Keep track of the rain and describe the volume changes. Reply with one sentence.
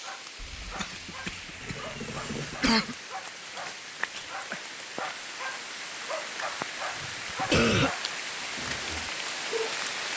The volume of the rain goes up.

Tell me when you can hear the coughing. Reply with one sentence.
You can hear the coughing from 0.4 to 3.0 s and from 7.5 to 8.0 s.